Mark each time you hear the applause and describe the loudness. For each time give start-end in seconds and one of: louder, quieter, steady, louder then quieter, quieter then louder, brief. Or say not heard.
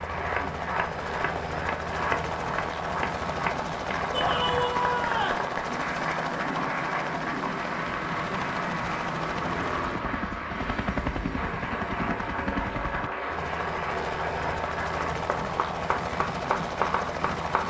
0.0-17.6 steady.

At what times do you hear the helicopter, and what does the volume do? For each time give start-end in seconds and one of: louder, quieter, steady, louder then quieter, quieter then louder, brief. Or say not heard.
0.0-17.6 steady.